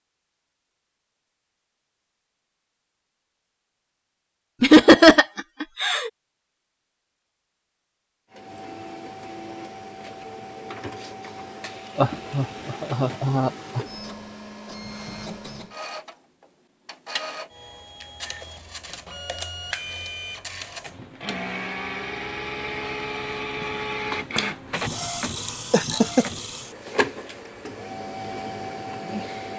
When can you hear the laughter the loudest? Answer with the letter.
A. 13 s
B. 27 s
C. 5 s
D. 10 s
C.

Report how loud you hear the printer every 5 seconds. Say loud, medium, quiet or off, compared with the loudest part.
off, medium, medium, medium, loud, loud.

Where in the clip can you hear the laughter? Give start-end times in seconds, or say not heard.
4.6-6.1, 11.9-13.8, 25.7-26.2.